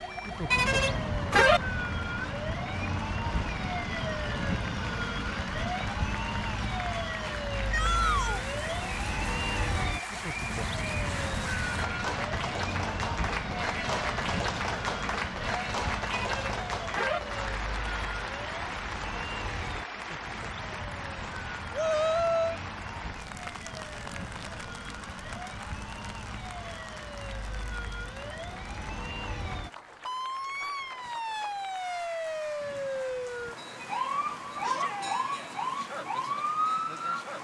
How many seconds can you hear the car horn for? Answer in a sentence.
The car horn can be heard for 3 seconds in total.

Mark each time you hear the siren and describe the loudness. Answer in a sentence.
You can hear the siren from 0.0 to 37.3 s, getting quieter then louder.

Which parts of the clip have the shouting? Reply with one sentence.
The shouting can be heard from 7.7 to 8.4 s, from 21.8 to 22.6 s and from 34.6 to 35.2 s.